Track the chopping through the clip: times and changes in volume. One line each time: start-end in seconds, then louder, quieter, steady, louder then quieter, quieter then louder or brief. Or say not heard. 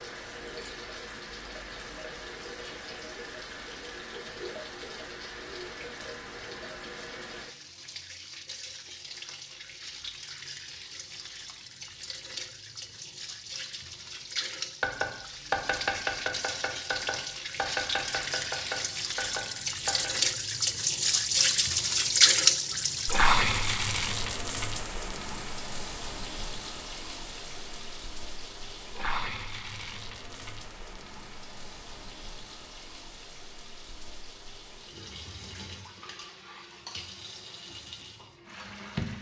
14.8-20.1 quieter.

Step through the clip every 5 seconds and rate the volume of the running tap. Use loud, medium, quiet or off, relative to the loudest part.
quiet, quiet, quiet, medium, loud, quiet, quiet, quiet.